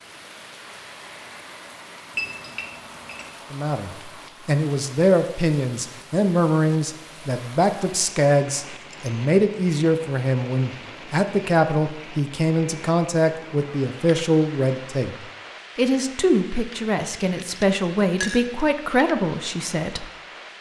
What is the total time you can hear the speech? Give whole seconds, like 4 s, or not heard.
16 s.